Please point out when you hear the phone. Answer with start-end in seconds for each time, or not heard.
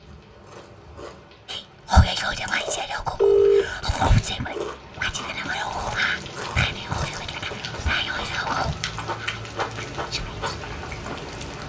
3.1-4.3.